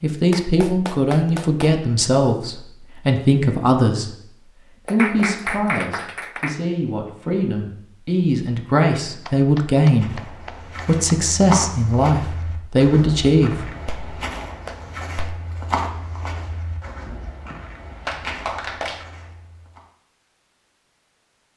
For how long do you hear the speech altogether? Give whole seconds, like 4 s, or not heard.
14 s.